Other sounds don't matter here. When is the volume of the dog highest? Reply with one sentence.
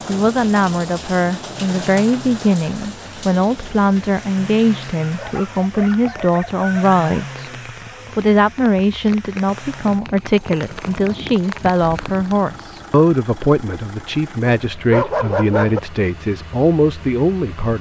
The loudest moment of the dog is at 15 seconds.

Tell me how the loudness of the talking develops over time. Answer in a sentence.
The volume of the talking stays about the same.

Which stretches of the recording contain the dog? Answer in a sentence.
You can hear the dog from 5.0 to 7.3 s and from 14.6 to 15.8 s.